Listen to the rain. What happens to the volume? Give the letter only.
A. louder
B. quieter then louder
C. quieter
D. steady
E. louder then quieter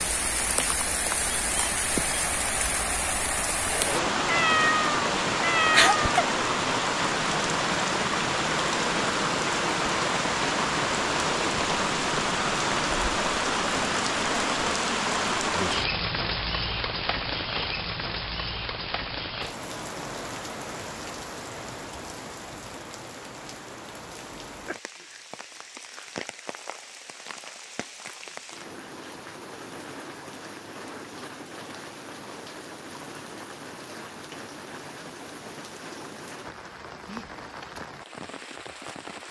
C.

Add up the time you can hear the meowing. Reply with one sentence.
The meowing can be heard for 2 seconds in total.